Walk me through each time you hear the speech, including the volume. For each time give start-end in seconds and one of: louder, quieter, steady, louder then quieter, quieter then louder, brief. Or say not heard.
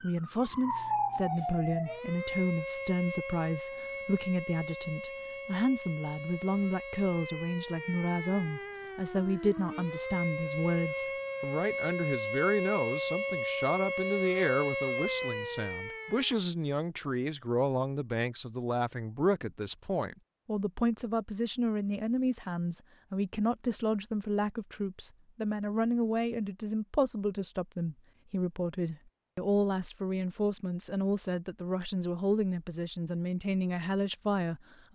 0.0-34.9 steady.